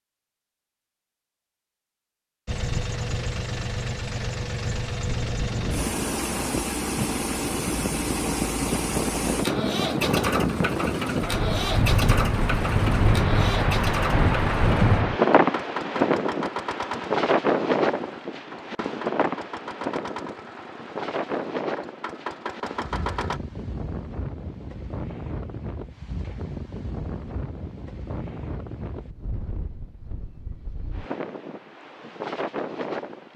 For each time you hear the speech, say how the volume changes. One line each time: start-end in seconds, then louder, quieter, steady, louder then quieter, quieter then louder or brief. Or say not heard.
not heard.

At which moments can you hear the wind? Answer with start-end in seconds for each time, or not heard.
5.4-33.3.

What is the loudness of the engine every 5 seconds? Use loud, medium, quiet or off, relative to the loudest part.
loud, loud, loud, medium, medium, off, off.